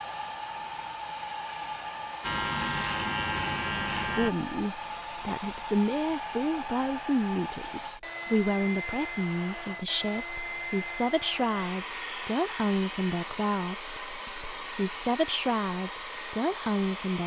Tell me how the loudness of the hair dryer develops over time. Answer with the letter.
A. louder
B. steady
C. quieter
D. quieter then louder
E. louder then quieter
B.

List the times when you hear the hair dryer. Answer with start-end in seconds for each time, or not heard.
0.0-17.2.